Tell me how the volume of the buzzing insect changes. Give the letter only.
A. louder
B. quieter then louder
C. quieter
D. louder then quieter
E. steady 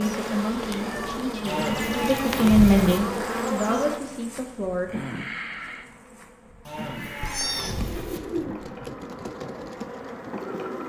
C.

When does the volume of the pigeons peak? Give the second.
8 s.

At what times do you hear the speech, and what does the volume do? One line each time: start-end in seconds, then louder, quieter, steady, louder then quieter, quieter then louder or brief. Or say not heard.
0.0-4.9 louder then quieter.